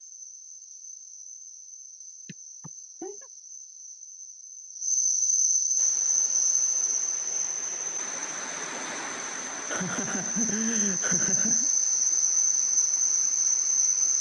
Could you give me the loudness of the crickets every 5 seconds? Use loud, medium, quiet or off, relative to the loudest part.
quiet, loud, loud.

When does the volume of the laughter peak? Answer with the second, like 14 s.
11 s.